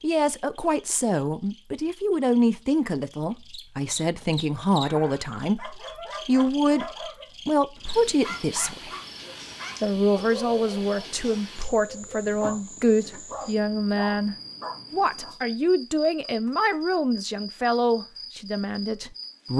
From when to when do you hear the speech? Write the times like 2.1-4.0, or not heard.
0.0-6.8, 7.5-8.9, 9.8-19.5.